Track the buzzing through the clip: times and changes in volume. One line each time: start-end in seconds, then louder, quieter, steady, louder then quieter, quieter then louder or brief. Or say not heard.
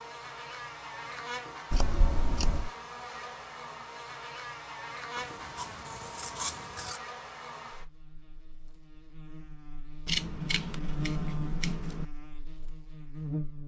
0.0-13.6 quieter then louder.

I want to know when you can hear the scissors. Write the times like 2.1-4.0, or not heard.
1.7-2.7, 5.2-7.0, 10.1-12.1.